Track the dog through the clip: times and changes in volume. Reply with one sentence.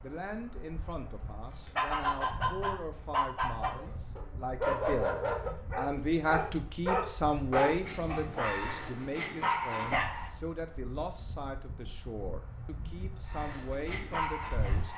You can hear the dog from 1.6 to 10.3 s, at a steady volume; and briefly from 13.2 to 14.9 s.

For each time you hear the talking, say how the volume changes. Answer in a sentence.
The talking can be heard from 0.0 to 14.9 s, getting louder then quieter.